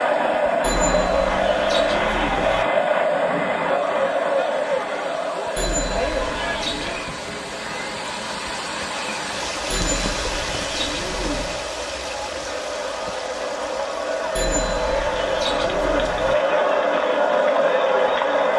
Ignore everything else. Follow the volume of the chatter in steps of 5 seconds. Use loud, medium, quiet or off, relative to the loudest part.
loud, medium, medium, loud.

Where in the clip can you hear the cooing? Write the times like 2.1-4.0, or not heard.
0.6-2.6, 5.5-7.0, 9.7-11.7, 14.3-16.4.